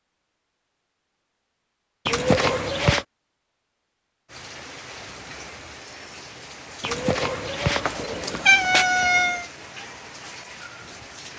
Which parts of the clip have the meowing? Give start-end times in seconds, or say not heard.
2.0-3.0, 6.8-9.4.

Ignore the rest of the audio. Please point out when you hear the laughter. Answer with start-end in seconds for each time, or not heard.
not heard.